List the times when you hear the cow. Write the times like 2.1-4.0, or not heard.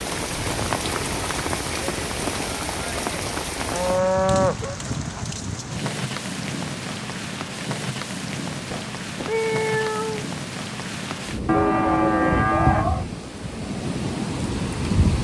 3.7-4.8, 11.4-13.1.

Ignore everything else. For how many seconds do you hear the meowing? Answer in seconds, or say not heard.
2 s.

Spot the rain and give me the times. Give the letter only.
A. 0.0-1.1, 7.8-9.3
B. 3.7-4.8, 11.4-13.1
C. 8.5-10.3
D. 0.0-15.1
D.